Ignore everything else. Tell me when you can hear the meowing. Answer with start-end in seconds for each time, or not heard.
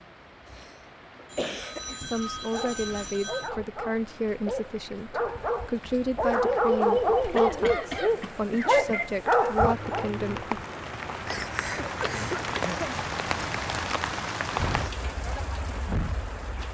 not heard.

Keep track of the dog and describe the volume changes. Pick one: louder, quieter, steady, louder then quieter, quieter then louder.
louder.